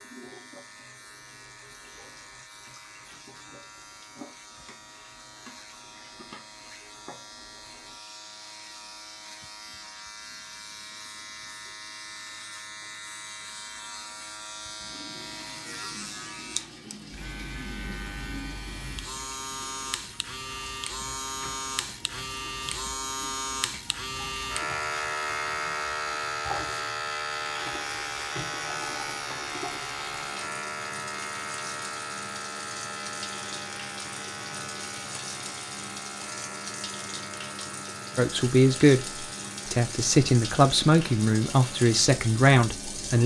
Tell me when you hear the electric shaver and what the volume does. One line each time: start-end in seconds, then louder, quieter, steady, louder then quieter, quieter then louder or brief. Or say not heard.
0.0-43.0 louder then quieter.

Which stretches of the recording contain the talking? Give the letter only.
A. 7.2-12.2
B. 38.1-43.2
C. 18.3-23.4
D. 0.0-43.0
B.